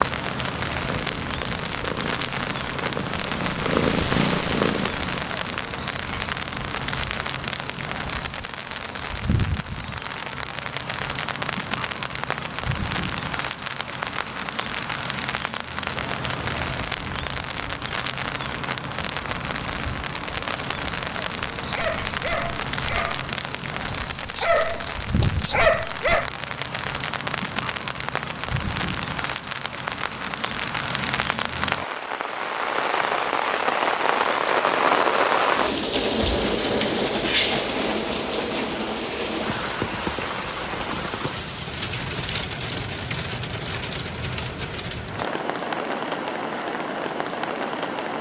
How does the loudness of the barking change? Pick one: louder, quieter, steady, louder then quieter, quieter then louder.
quieter then louder.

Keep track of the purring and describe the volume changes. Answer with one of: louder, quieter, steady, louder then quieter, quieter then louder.
louder.